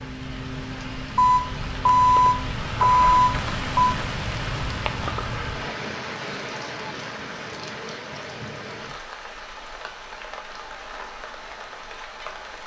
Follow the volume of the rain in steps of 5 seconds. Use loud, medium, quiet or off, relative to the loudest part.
loud, loud, medium.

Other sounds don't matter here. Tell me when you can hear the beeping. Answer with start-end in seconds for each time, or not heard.
1.1-4.0.